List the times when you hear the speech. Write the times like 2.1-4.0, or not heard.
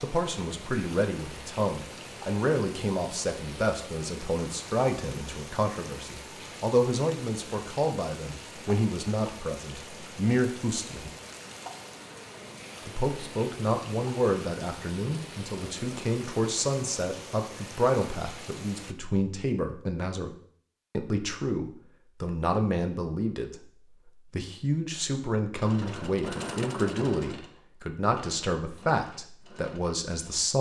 0.0-11.1, 12.8-20.3, 20.9-30.5.